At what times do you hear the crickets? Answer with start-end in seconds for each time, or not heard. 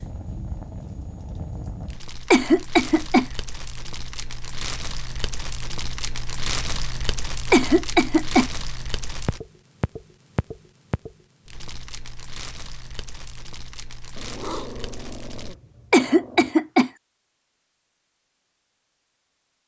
not heard.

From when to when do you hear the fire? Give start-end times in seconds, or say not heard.
0.0-15.6.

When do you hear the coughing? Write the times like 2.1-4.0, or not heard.
2.3-3.2, 7.5-8.5, 15.9-16.9.